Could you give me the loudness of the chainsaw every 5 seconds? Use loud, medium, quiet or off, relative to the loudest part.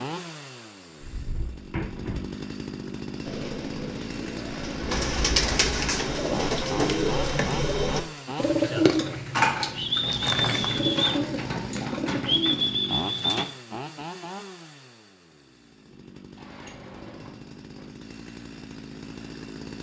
loud, loud, loud, medium.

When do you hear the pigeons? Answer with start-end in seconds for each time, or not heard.
3.2-13.4.